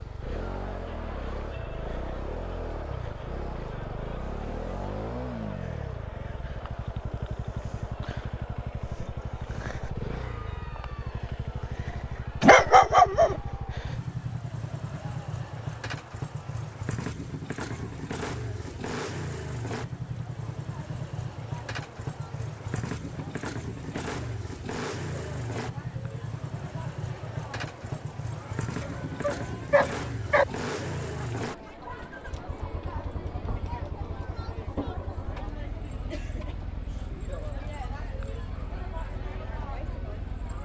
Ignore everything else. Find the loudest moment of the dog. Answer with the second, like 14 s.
13 s.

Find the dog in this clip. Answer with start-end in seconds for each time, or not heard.
12.4-13.3, 28.8-30.4.